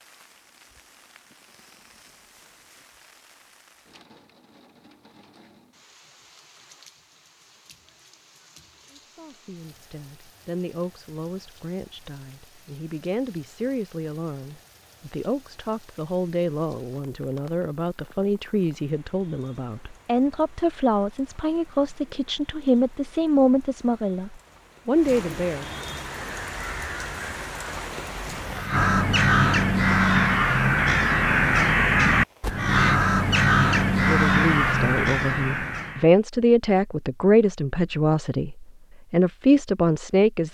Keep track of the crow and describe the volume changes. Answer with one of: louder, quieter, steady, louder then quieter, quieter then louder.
louder.